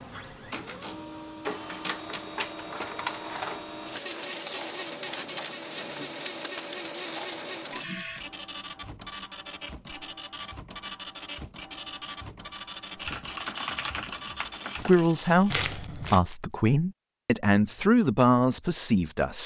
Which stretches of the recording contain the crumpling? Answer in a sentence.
You can hear the crumpling from 15.5 to 16.2 s.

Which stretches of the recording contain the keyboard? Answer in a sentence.
You can hear the keyboard from 13.0 to 15.1 s.